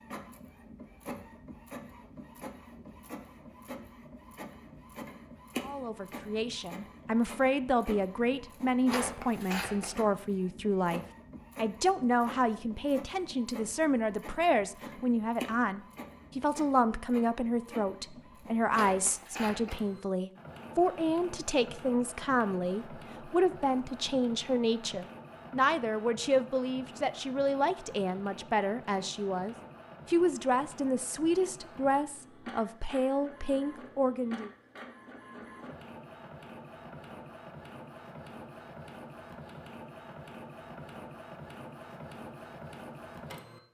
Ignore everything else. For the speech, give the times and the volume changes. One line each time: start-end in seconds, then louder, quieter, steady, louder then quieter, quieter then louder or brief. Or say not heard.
5.6-34.5 steady.